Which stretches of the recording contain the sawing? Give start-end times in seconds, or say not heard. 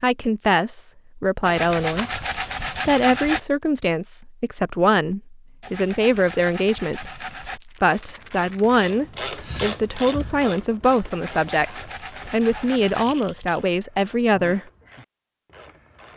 1.4-3.4, 5.6-7.6, 11.1-13.1.